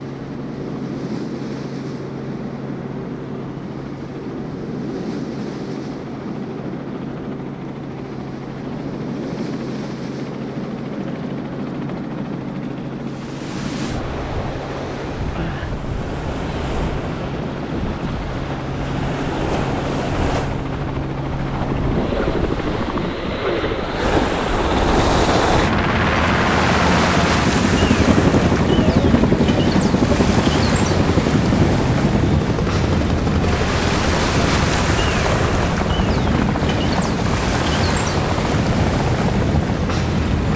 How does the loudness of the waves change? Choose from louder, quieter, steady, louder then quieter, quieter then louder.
louder.